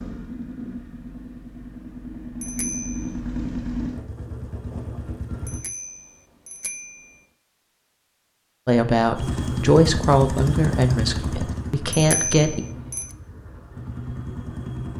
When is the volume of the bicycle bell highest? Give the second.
12 s.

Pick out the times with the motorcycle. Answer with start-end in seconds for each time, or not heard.
0.0-5.6, 9.2-14.9.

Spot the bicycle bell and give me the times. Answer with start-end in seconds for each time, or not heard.
2.4-3.1, 5.5-7.2, 11.9-13.2.